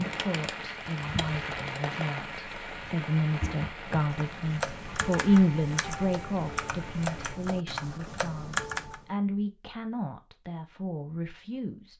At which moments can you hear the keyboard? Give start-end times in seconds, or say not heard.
0.0-9.0.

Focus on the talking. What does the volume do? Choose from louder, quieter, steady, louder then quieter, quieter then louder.
louder then quieter.